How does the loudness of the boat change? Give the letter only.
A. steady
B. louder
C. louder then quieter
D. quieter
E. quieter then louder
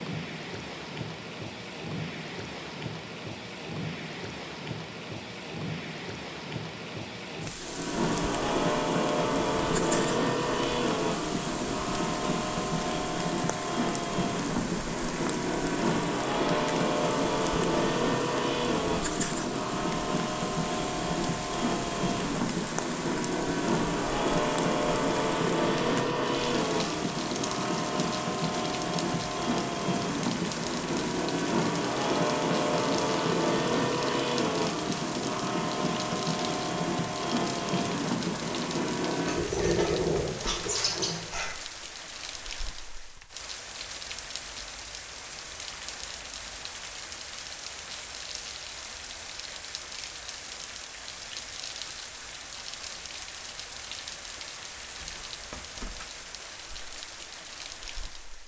A.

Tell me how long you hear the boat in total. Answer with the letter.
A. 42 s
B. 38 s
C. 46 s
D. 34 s
D.